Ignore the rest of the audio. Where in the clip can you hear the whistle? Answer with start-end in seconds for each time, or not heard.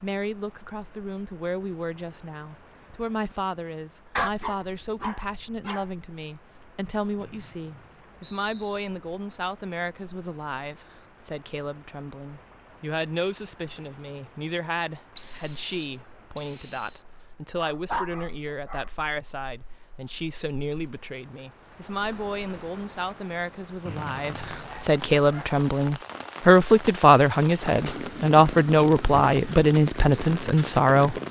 7.2-8.8, 15.2-17.1, 23.9-24.9.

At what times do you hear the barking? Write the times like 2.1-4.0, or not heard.
4.2-5.8, 17.7-18.9, 24.6-25.6.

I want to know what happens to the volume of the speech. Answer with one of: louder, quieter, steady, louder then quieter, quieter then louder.
louder.